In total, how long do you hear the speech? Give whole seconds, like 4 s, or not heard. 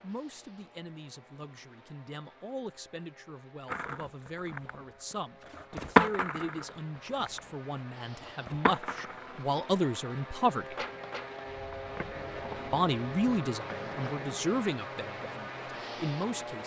15 s.